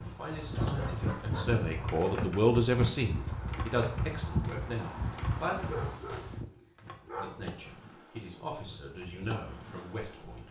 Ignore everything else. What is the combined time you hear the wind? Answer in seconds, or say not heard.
6 s.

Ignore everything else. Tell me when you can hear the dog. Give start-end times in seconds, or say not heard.
0.3-1.9, 5.5-7.4.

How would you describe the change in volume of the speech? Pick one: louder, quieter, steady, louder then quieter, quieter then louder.
louder then quieter.